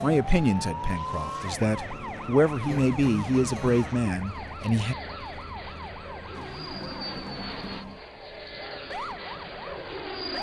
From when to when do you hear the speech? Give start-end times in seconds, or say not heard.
0.0-5.0.